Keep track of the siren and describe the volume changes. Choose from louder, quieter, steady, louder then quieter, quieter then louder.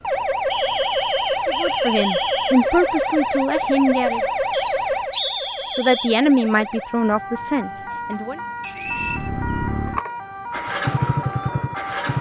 quieter.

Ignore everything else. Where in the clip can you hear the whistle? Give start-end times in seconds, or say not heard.
0.5-2.5, 4.5-6.1, 8.6-9.3.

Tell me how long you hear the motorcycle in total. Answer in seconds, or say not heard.
3 s.